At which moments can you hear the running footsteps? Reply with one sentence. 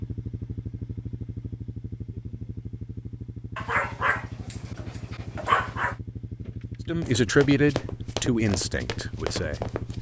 The running footsteps can be heard from 7.0 to 9.9 s.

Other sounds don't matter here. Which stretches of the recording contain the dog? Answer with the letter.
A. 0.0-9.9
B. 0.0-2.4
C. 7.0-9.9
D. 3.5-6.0
D.